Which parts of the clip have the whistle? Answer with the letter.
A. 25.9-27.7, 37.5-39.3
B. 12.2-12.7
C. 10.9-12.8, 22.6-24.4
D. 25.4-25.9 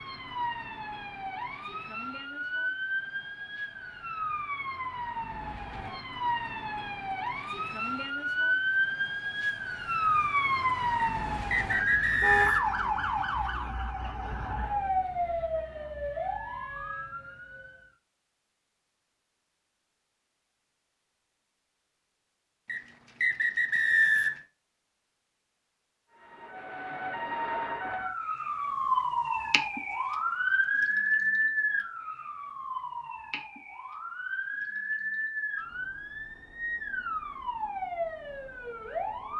C.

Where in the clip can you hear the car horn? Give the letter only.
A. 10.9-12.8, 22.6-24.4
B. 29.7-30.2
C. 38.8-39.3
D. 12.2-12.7
D.